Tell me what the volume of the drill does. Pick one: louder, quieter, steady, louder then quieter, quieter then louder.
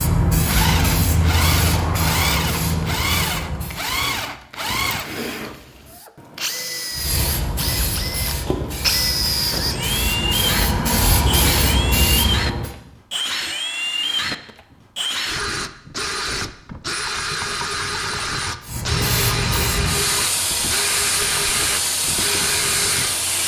steady.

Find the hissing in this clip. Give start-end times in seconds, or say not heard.
0.0-3.9, 7.0-12.7, 18.6-23.4.